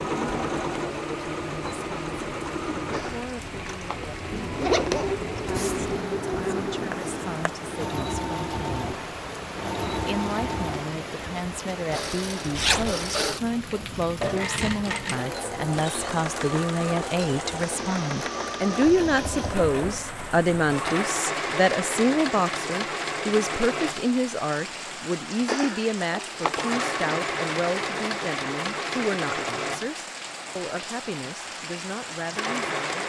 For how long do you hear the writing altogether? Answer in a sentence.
The writing can be heard for 2 seconds in total.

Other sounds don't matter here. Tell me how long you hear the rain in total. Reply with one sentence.
You can hear the rain for 33 seconds altogether.